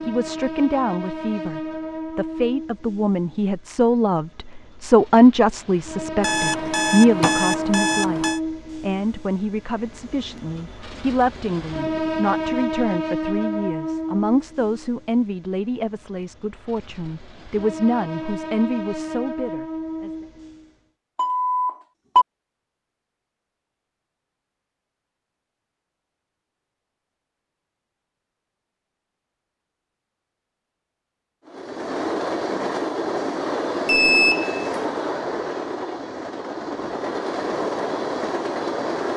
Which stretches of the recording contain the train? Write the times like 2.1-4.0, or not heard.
0.0-20.8, 31.4-39.1.